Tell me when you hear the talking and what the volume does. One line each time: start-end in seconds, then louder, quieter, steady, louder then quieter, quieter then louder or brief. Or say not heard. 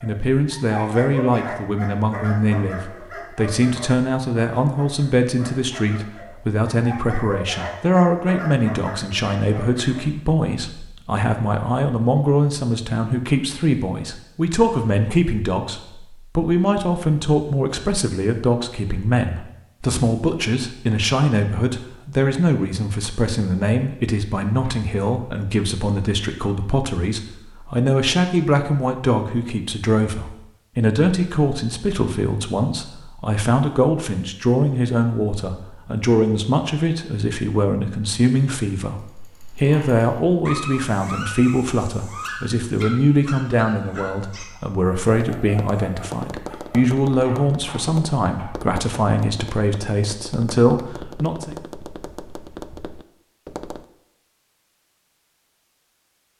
0.0-51.5 steady.